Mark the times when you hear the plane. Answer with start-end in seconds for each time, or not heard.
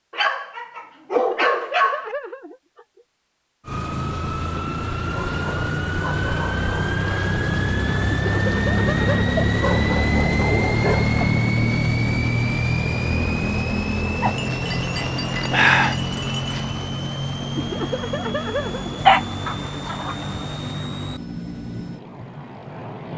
3.6-23.1.